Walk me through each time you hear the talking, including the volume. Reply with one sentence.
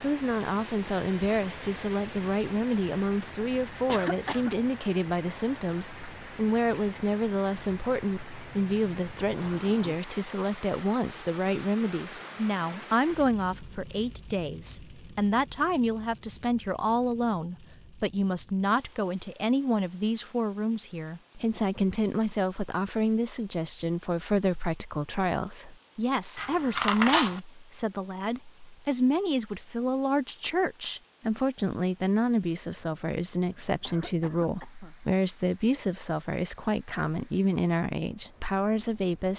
You can hear the talking from 0.0 to 39.3 s, at a steady volume.